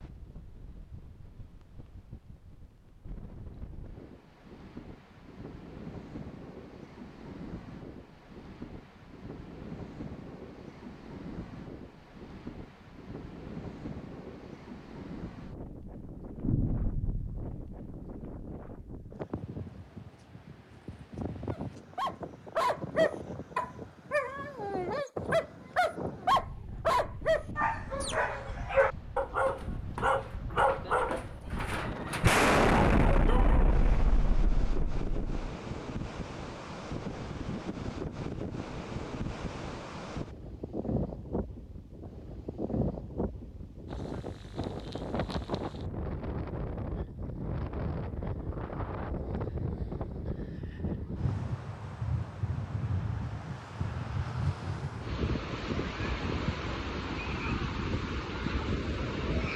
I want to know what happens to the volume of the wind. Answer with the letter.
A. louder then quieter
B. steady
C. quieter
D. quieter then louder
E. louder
E.